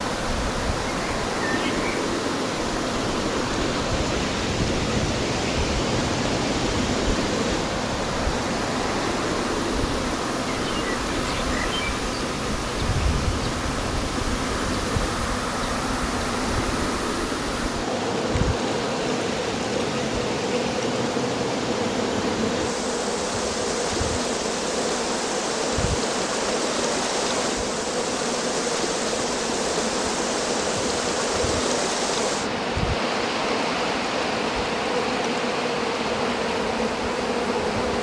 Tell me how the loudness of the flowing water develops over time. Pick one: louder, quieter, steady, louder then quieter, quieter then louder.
steady.